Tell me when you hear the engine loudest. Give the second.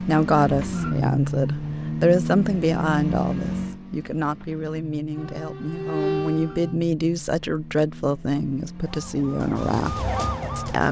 1 s.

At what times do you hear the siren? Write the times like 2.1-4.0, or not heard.
5.1-6.8, 8.8-10.8.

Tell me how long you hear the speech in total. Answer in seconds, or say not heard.
11 s.